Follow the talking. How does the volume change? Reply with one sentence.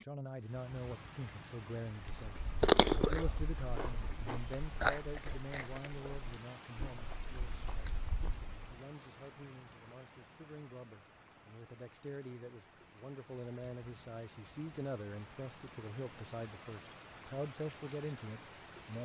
The loudness of the talking goes down, then up.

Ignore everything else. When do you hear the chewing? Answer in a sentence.
The chewing can be heard from 2.0 to 8.6 s.